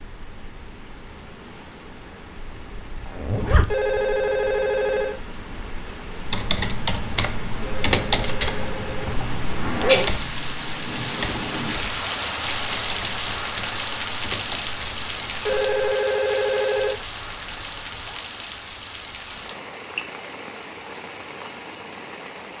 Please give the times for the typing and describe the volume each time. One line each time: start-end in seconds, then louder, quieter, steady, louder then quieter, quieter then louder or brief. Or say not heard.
6.2-15.9 quieter.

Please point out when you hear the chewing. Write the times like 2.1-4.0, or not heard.
not heard.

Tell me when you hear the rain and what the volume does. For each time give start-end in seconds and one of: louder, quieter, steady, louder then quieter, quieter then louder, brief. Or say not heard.
0.0-22.5 louder then quieter.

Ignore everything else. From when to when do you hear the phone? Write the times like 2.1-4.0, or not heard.
3.6-5.2, 7.6-9.2, 15.4-17.0.